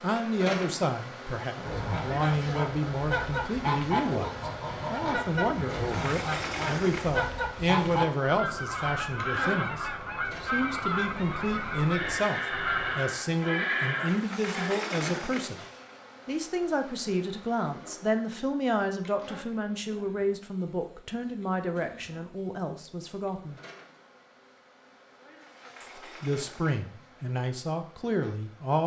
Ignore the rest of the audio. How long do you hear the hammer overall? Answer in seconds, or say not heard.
not heard.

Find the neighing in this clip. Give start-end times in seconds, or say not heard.
11.9-14.7.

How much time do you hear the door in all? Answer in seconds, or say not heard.
6 s.